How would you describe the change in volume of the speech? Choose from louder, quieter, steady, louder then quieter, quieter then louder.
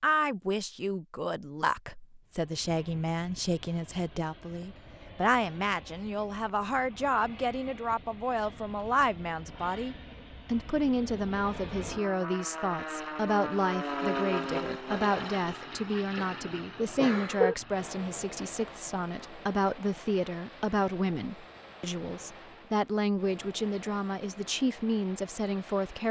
steady.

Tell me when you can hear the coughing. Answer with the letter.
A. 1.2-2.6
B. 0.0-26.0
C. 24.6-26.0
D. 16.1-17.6
D.